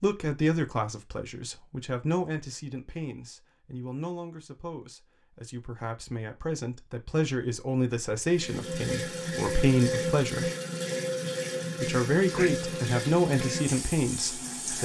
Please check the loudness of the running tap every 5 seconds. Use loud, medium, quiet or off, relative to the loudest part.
off, loud, loud.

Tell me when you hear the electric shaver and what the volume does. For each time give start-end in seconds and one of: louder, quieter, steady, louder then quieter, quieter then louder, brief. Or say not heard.
not heard.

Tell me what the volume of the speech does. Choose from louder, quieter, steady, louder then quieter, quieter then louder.
quieter then louder.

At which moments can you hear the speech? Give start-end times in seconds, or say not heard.
0.0-10.5, 11.8-14.8.